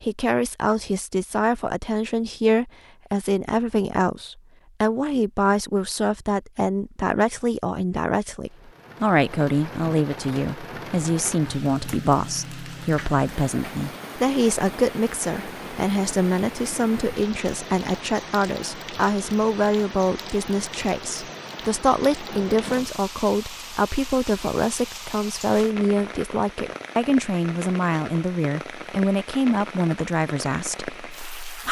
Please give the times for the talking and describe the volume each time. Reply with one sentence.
The talking can be heard from 0.0 to 31.6 s, at a steady volume.